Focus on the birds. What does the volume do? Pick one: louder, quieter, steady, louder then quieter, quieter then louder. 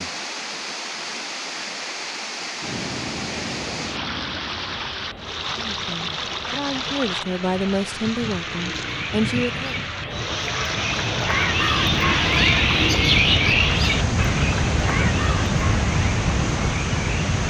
louder then quieter.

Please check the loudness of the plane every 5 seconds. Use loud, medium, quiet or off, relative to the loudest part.
medium, quiet, loud, loud.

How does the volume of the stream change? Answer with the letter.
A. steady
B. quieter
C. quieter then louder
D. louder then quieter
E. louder
A.